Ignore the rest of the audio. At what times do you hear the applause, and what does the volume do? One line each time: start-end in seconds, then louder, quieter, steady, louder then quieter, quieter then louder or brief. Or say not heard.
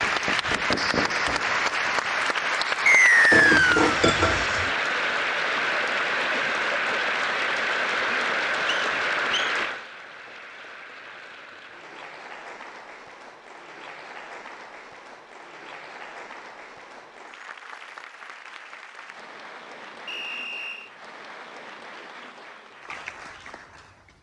0.0-24.1 quieter.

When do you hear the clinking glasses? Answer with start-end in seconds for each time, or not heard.
3.3-4.8.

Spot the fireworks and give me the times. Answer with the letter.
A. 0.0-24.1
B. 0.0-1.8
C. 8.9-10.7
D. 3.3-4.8
B.